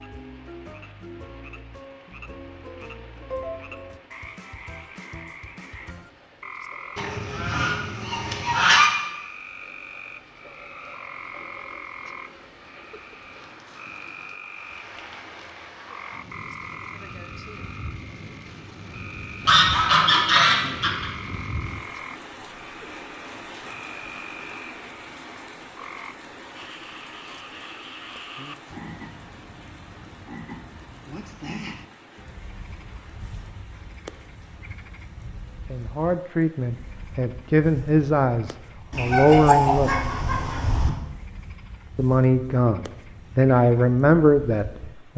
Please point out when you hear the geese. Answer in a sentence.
The geese can be heard from 7.0 to 8.9 s, from 19.4 to 21.1 s and from 38.9 to 40.9 s.